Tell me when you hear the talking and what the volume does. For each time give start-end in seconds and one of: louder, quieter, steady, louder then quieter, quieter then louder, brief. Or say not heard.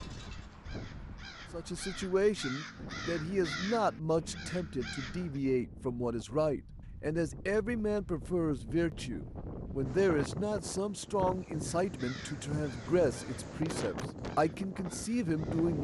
1.5-15.7 steady.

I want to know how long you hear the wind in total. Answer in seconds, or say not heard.
16 s.